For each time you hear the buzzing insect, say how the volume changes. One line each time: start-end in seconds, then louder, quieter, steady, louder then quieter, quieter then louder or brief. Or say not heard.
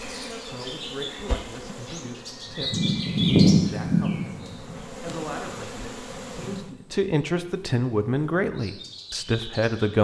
0.0-6.8 quieter then louder.